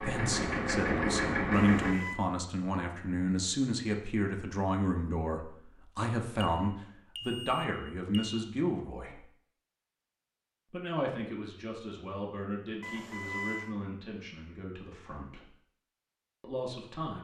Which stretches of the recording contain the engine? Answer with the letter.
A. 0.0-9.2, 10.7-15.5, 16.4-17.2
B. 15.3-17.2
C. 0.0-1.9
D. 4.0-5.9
C.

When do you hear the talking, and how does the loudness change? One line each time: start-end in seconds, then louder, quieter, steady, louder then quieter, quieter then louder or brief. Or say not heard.
0.0-9.2 steady
10.7-15.5 quieter
16.4-17.2 brief.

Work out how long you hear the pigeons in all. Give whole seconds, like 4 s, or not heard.
not heard.